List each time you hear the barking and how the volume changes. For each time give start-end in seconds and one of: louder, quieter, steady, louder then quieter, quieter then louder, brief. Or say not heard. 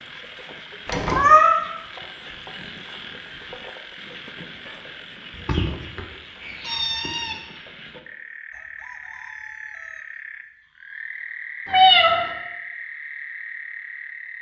not heard.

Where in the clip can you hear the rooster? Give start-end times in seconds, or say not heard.
8.5-10.1.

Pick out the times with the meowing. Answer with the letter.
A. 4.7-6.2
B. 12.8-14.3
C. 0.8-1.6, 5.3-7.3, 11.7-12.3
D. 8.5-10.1
C.